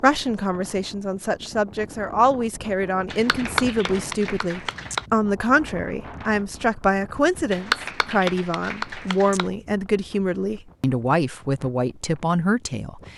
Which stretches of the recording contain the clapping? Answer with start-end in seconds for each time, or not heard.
3.1-5.0, 7.5-9.5.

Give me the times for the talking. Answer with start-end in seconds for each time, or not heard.
0.0-13.1.